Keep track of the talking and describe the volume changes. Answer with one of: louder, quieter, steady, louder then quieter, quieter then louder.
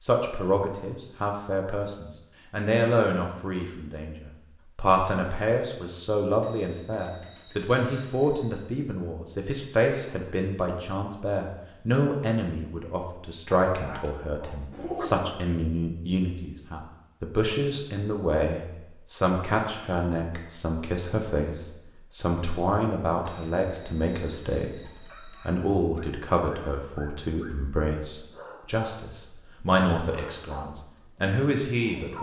steady.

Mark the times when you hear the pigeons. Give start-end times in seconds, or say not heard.
14.7-15.3.